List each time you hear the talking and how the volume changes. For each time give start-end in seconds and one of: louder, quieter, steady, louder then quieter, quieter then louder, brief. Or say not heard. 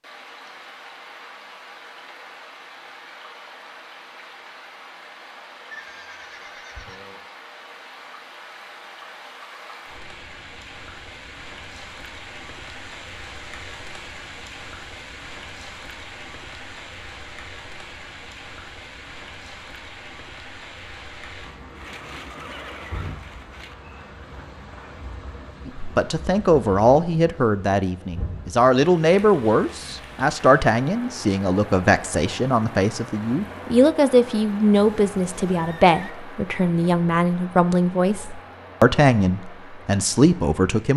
25.6-40.9 steady.